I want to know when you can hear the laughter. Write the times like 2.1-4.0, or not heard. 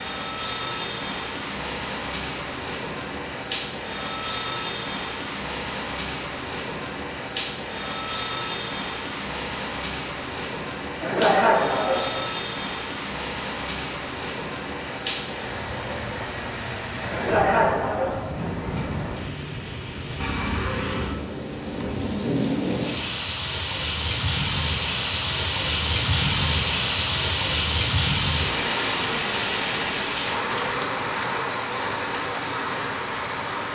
11.0-12.2, 17.1-18.4.